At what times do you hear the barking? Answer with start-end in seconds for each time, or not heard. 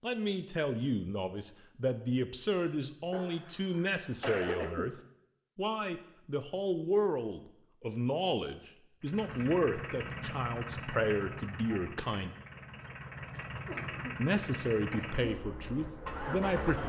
not heard.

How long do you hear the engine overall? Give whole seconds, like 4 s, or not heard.
8 s.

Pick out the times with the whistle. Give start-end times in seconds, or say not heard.
not heard.